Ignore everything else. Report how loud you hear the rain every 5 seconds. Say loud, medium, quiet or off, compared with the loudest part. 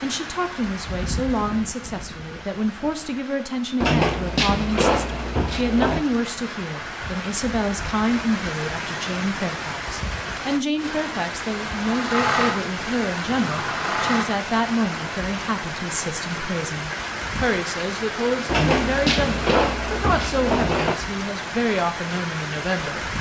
medium, loud, loud, loud, loud.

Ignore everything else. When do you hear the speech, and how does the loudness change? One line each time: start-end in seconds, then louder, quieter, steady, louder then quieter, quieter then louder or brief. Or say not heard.
0.0-23.1 steady.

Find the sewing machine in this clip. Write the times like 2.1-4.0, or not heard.
11.8-14.2.